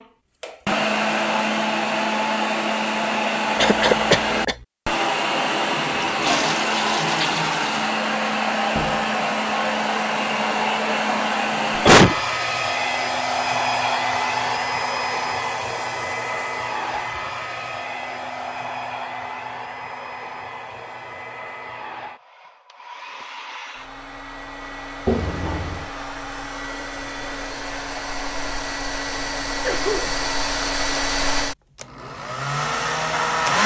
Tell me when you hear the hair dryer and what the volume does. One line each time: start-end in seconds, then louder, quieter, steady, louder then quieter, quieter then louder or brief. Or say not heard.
0.0-33.6 quieter then louder.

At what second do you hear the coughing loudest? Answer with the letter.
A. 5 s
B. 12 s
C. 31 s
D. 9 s
B.